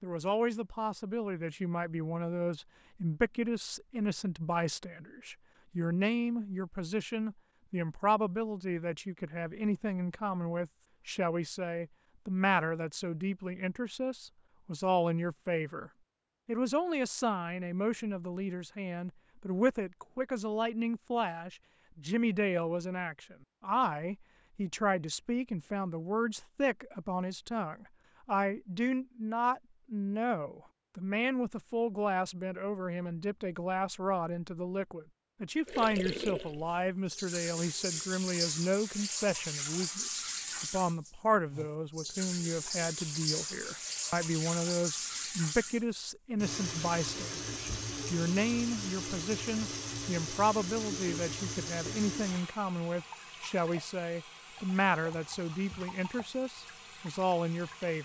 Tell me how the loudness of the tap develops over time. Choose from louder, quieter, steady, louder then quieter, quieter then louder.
quieter.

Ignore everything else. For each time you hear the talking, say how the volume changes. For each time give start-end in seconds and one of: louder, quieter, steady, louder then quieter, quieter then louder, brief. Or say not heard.
0.0-58.0 steady.